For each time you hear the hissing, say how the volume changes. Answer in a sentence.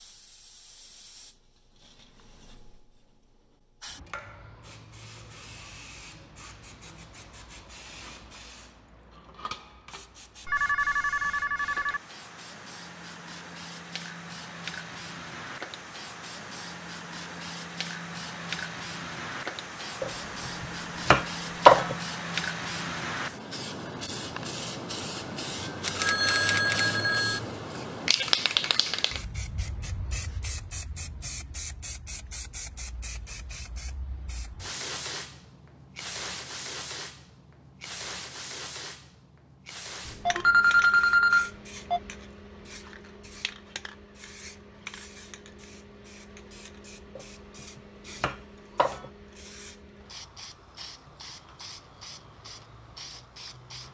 You can hear the hissing from 0.0 to 53.8 s, getting louder then quieter.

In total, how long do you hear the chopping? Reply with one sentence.
The chopping can be heard for 4 seconds in total.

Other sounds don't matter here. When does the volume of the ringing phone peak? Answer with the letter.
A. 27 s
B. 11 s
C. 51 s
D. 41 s
D.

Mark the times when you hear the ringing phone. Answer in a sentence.
You can hear the ringing phone from 10.4 to 12.0 s, from 25.9 to 27.4 s and from 40.0 to 42.0 s.